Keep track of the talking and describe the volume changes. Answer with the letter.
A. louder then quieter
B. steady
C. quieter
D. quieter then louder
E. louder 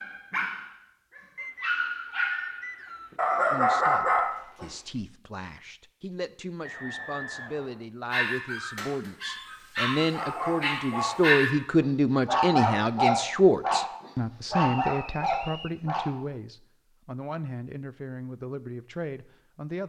A.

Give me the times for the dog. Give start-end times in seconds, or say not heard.
0.0-4.7, 8.1-16.0.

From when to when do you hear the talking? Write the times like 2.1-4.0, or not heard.
3.5-19.8.